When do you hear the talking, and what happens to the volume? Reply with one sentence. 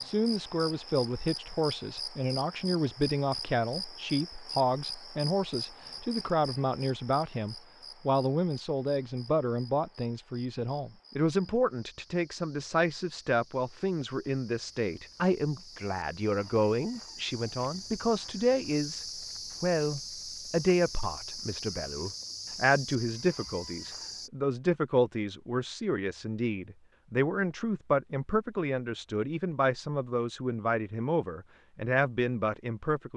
The talking can be heard from 0.0 to 33.1 s, at a steady volume.